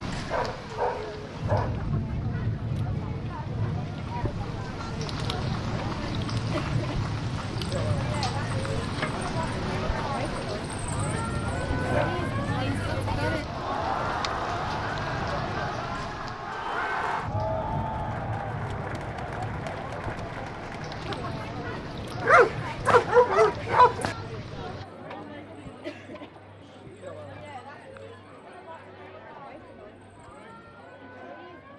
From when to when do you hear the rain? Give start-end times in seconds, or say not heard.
0.0-24.9.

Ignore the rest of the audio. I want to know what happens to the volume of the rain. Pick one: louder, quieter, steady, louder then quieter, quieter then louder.
quieter.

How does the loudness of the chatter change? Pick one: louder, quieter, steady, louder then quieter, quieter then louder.
louder then quieter.